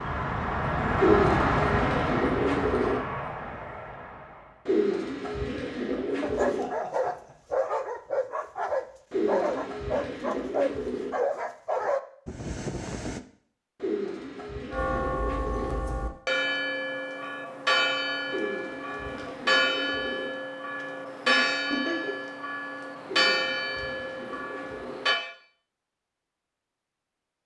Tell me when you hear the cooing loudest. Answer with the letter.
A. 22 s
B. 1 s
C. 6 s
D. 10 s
B.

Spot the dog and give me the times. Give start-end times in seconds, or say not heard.
6.3-13.2.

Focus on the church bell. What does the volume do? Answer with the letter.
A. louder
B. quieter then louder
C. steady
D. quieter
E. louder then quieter
C.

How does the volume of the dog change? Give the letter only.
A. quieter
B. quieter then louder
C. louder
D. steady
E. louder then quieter
D.